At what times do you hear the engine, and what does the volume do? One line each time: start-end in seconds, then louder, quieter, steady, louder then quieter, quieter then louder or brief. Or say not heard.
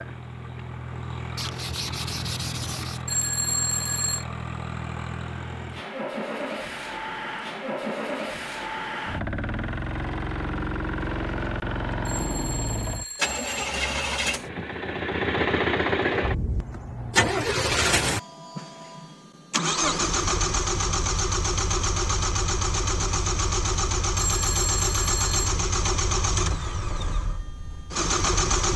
0.0-28.7 louder.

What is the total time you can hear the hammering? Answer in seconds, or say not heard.
not heard.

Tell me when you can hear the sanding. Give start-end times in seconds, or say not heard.
1.4-3.0.